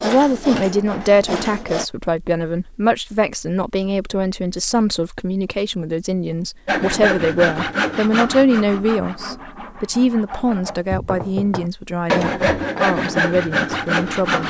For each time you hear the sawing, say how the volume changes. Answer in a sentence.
You can hear the sawing briefly from 0.0 to 1.9 s; and from 6.7 to 14.4 s, getting quieter then louder.